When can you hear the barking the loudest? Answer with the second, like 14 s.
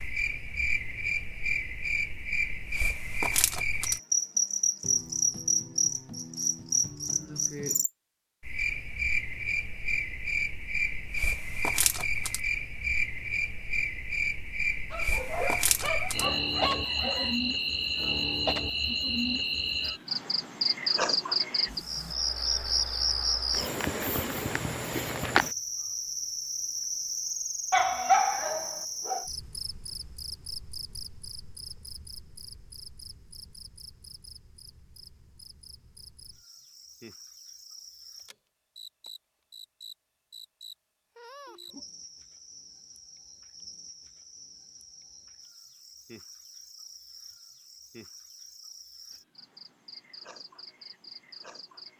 28 s.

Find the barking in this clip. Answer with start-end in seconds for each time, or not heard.
14.9-17.4, 27.7-29.2.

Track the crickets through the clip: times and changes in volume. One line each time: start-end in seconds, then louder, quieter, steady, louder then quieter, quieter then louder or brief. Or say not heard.
0.0-51.9 quieter.